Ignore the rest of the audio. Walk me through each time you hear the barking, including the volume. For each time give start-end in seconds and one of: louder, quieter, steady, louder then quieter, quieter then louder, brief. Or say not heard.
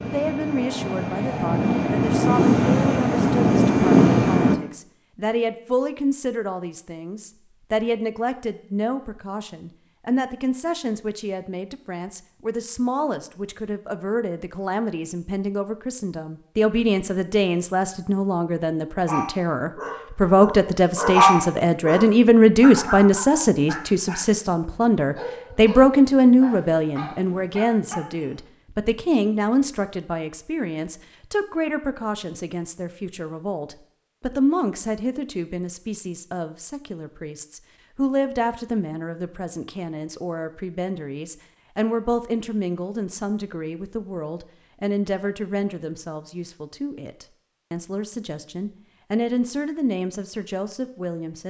19.1-28.4 louder then quieter.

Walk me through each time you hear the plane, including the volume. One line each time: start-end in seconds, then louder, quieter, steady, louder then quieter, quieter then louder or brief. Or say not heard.
0.0-4.5 louder.